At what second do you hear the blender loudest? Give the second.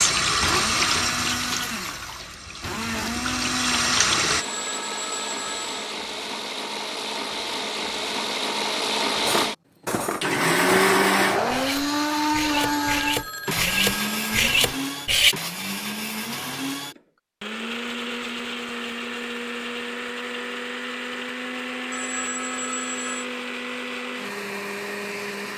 11 s.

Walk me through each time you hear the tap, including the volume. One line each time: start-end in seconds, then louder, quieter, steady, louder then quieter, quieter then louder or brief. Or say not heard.
0.0-4.5 quieter then louder.